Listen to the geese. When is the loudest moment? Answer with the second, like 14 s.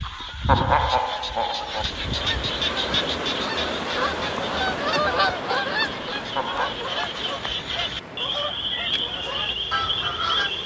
5 s.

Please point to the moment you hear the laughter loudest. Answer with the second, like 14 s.
1 s.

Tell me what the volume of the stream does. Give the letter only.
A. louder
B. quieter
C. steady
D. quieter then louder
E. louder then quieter
B.